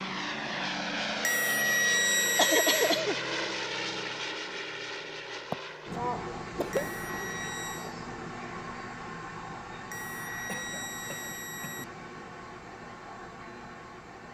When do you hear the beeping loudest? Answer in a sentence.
The loudest moment of the beeping is at 2 seconds.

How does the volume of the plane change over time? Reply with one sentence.
The loudness of the plane goes down.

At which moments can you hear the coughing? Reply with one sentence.
The coughing can be heard from 2.4 to 3.1 s, from 5.5 to 6.8 s and from 10.4 to 11.9 s.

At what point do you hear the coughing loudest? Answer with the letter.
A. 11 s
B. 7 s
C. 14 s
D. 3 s
D.